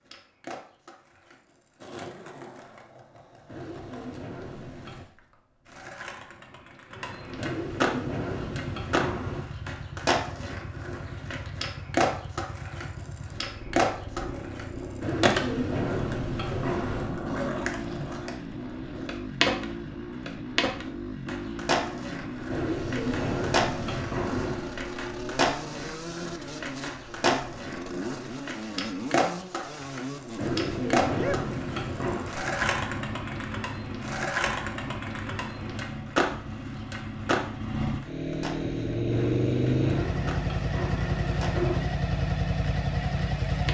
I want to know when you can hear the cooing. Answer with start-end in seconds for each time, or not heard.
3.5-5.0, 7.3-9.5, 15.0-17.1, 22.5-24.8, 30.4-32.4, 39.1-41.9.